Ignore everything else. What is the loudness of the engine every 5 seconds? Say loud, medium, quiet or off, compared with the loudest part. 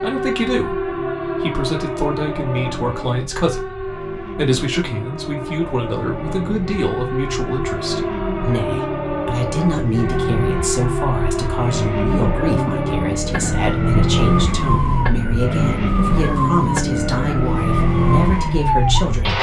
quiet, medium, loud, loud.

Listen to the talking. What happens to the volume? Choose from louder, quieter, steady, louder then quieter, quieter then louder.
steady.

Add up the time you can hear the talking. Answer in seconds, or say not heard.
19 s.